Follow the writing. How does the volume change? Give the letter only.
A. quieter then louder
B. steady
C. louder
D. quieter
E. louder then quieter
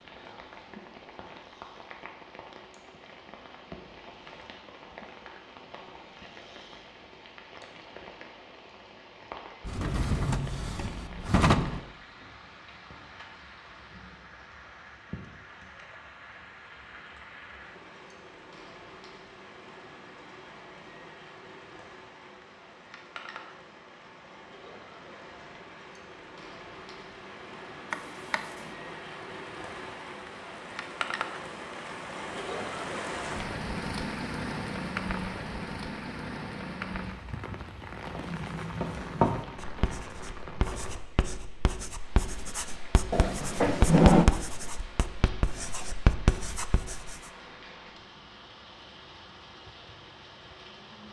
A.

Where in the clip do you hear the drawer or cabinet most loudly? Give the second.
44 s.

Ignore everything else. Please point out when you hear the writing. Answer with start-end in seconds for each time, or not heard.
37.9-47.1.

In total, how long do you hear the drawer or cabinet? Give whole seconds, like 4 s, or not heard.
4 s.